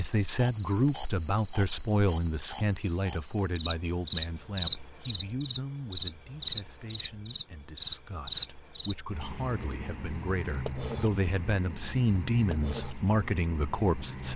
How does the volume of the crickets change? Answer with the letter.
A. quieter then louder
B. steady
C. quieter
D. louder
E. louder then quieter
C.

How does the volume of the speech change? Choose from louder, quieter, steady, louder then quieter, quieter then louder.
quieter then louder.